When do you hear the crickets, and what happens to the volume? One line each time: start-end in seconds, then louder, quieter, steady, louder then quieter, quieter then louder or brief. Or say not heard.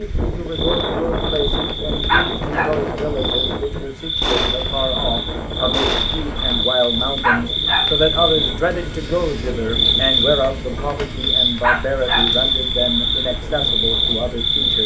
0.0-14.8 louder.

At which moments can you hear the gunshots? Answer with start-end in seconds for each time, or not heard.
4.2-6.5.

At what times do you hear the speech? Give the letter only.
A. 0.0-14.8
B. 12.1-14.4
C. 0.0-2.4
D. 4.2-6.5
A.